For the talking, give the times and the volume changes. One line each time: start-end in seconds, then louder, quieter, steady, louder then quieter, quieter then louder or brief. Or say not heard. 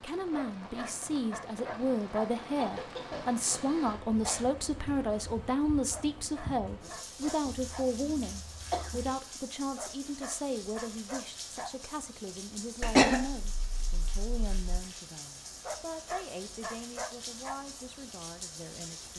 0.0-19.1 quieter.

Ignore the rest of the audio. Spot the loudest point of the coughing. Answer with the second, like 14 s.
13 s.